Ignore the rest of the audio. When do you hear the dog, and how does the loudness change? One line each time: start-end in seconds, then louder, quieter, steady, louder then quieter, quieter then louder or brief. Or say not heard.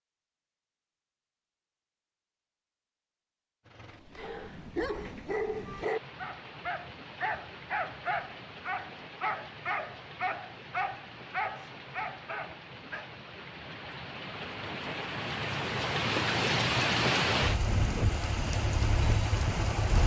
4.2-13.1 steady.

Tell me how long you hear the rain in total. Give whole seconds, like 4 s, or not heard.
16 s.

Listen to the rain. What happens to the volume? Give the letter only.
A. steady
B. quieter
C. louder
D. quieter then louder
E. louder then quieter
C.